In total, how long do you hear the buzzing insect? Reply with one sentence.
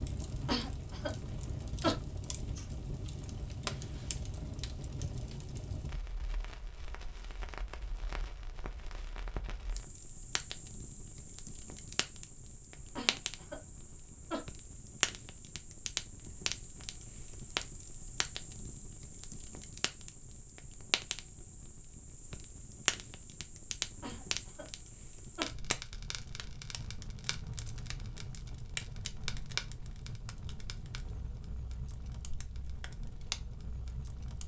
You can't hear the buzzing insect here.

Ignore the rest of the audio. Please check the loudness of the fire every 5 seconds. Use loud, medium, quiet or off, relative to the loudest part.
loud, medium, medium, loud, loud, loud, medium.